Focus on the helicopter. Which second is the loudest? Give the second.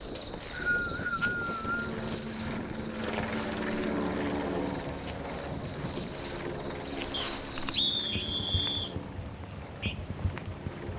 4 s.